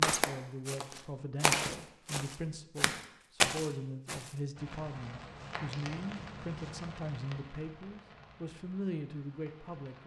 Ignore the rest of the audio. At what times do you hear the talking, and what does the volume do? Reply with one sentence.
The talking can be heard from 0.0 to 10.0 s, at a steady volume.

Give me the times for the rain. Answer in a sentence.
The rain can be heard from 4.5 to 10.0 s.